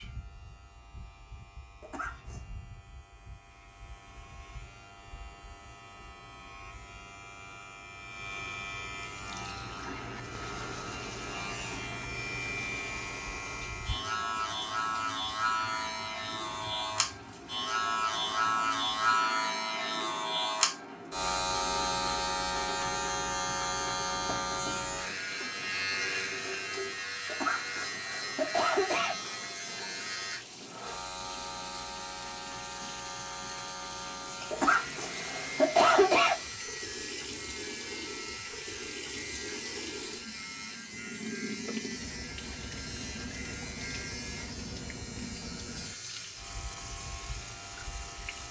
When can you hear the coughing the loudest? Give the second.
36 s.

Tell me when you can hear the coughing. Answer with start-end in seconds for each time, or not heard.
1.8-2.5, 27.2-29.1, 34.5-36.4.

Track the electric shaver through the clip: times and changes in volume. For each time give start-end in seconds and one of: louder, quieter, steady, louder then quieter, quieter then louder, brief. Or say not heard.
0.0-48.4 louder then quieter.